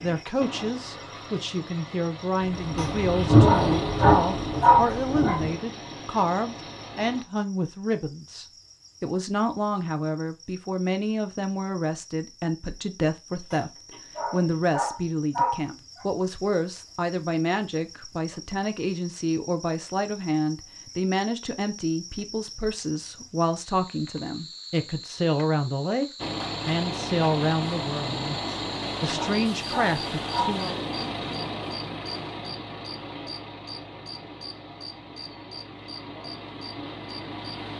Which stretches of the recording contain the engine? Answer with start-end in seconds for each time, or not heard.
0.0-7.2, 26.1-37.7.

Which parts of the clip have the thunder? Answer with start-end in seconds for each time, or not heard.
2.4-5.6.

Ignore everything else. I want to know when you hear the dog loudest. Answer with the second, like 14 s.
5 s.